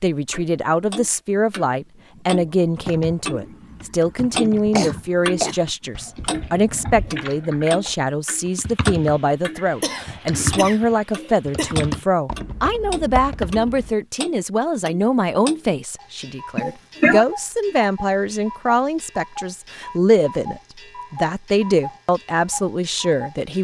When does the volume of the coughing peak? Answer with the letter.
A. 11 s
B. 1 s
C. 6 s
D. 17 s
D.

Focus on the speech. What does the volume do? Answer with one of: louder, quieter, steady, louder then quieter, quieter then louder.
steady.